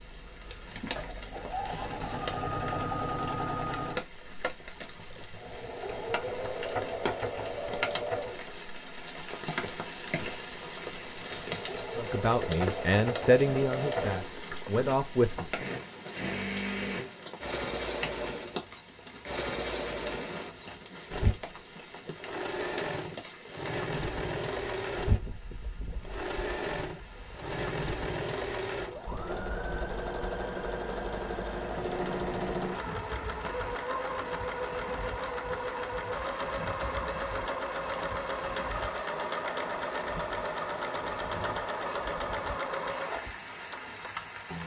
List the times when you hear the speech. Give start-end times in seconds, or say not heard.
11.9-15.4.